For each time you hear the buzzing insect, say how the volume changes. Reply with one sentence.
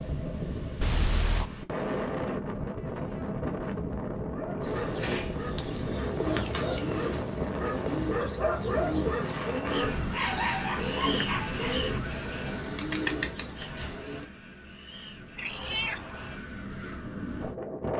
The buzzing insect can't be heard in this clip.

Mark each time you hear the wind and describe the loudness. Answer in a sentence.
The wind can be heard from 0.0 to 17.9 s, getting quieter.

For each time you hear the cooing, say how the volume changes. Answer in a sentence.
You can hear the cooing from 4.6 to 14.3 s, at a steady volume.